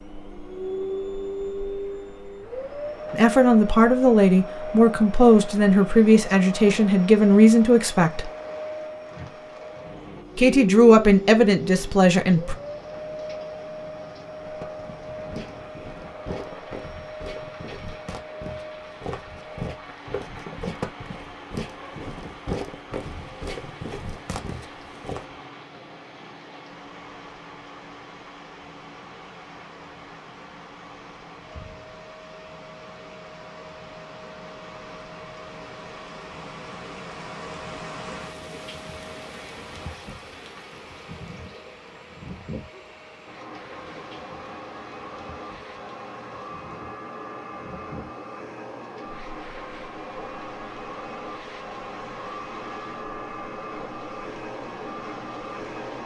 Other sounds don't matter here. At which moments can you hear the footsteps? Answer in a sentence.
You can hear the footsteps from 14.4 to 25.4 s.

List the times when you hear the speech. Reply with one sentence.
You can hear the speech from 3.1 to 8.3 s and from 10.3 to 12.6 s.